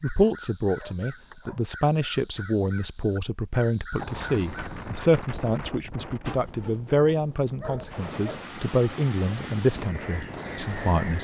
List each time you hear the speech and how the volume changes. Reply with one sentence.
You can hear the speech from 0.0 to 11.1 s, at a steady volume.